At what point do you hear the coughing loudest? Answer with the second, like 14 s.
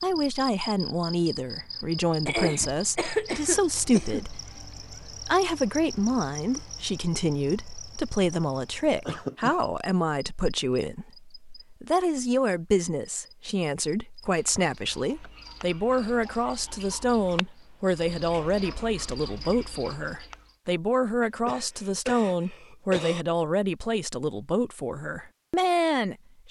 3 s.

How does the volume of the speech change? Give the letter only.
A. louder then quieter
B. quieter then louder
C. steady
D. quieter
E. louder
C.